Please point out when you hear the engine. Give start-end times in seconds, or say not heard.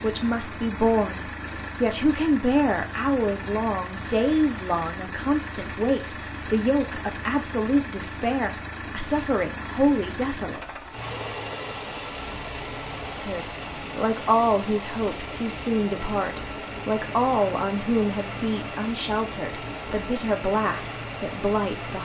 0.0-22.0.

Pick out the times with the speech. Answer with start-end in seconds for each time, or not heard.
0.0-10.8, 13.2-22.0.